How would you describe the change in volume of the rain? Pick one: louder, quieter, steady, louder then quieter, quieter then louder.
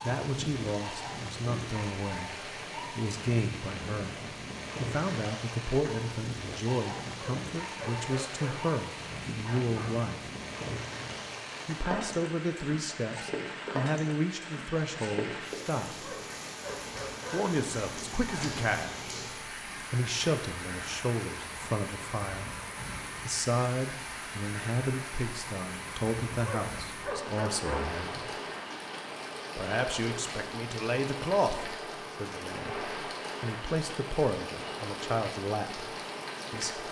steady.